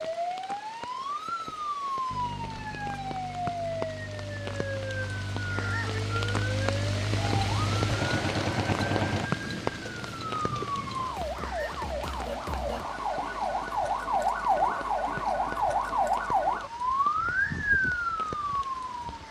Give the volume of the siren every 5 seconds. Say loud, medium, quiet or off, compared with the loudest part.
medium, medium, loud, loud.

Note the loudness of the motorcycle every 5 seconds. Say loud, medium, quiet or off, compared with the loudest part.
medium, loud, off, off.